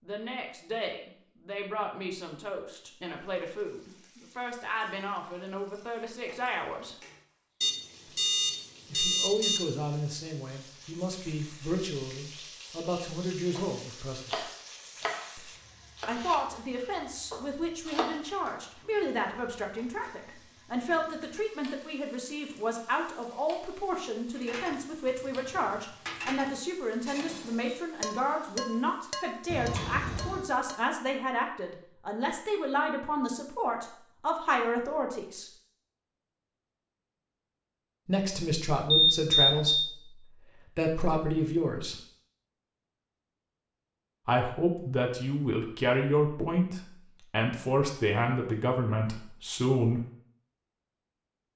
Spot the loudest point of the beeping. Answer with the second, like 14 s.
39 s.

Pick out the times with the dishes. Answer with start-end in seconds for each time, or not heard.
24.4-30.8.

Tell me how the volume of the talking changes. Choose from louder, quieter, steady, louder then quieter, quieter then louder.
louder.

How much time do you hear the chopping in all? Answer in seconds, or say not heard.
4 s.